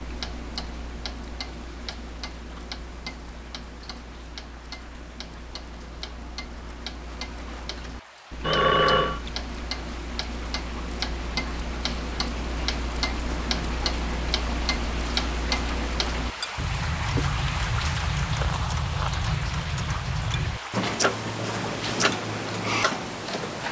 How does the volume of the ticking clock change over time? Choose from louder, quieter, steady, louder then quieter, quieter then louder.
louder.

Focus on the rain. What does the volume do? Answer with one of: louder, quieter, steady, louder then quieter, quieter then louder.
louder.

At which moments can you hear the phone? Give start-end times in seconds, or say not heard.
8.4-9.2.